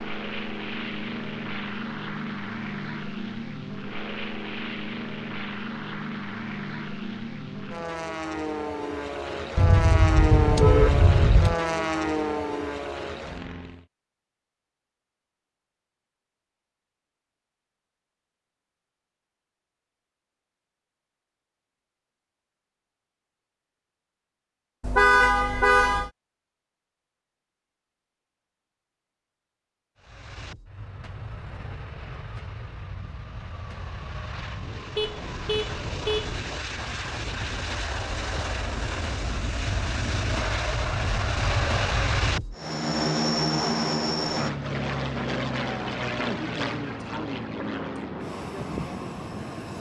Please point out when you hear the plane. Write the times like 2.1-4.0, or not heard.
0.0-13.8, 29.9-49.7.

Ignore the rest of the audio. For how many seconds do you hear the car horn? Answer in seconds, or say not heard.
5 s.